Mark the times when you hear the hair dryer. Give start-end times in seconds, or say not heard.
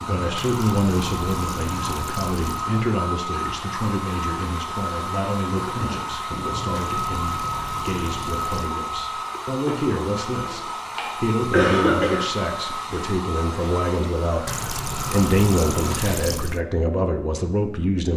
0.0-16.2.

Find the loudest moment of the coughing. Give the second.
12 s.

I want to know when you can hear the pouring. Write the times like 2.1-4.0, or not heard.
0.3-2.6, 6.8-8.7, 14.4-16.6.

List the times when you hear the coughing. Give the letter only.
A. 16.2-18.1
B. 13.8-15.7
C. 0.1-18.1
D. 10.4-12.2
D.